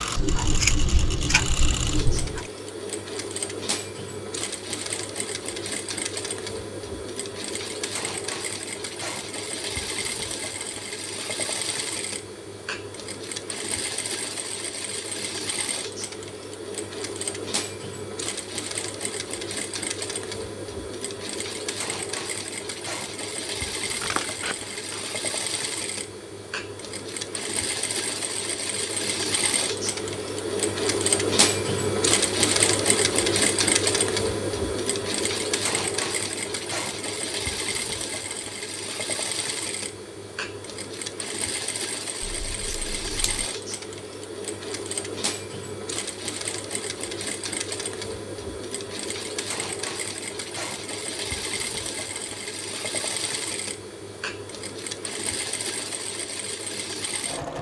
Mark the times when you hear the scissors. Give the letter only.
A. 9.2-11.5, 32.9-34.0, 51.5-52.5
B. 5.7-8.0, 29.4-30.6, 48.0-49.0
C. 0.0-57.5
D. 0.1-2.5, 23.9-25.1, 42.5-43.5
D.